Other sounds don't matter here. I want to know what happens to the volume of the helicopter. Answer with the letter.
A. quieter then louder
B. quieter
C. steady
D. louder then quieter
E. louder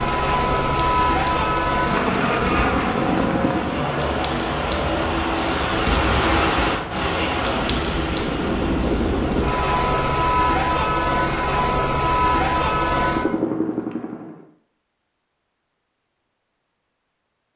A.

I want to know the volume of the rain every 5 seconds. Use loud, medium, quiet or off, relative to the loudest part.
medium, loud, off, off.